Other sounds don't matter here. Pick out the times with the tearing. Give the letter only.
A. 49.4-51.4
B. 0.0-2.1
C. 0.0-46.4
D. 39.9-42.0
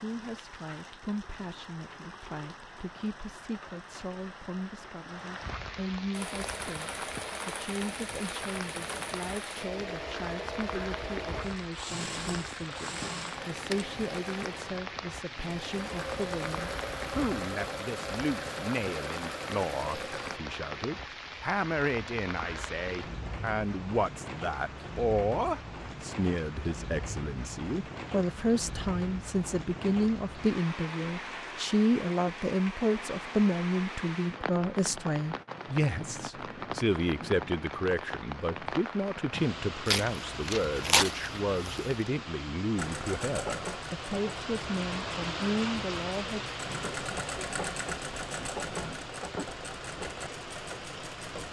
D.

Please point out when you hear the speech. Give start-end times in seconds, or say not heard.
0.0-46.4.